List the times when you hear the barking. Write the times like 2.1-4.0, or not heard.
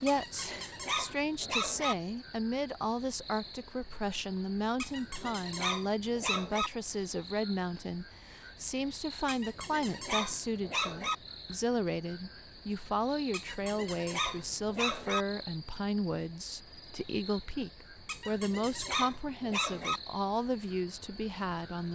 0.1-1.9, 4.8-6.7, 9.2-11.2, 13.3-15.2, 18.1-20.0.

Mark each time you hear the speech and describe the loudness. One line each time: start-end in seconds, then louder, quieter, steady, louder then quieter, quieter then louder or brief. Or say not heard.
0.0-21.8 steady.